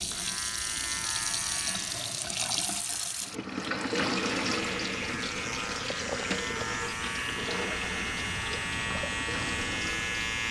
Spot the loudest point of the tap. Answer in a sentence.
The loudest moment of the tap is at 4 seconds.